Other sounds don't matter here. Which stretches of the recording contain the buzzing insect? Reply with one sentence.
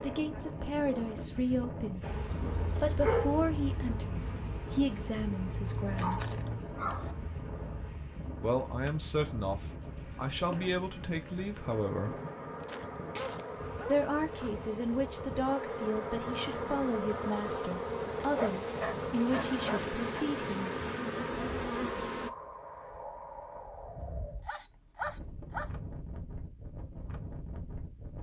You can hear the buzzing insect from 2.0 to 22.3 s.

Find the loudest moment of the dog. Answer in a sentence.
The loudest moment of the dog is at 3 seconds.